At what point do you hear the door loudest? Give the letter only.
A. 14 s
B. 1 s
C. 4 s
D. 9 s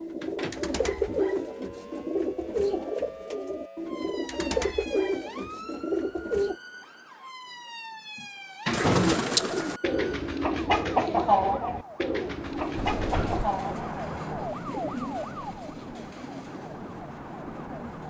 D.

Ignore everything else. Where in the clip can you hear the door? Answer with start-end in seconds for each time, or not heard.
0.2-1.2, 8.2-9.2, 12.8-13.5.